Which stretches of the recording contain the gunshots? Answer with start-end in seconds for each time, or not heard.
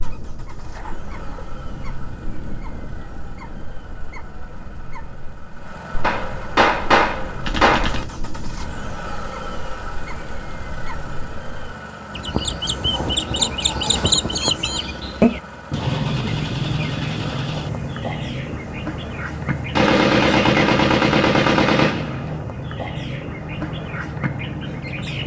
6.0-8.1, 19.8-22.2.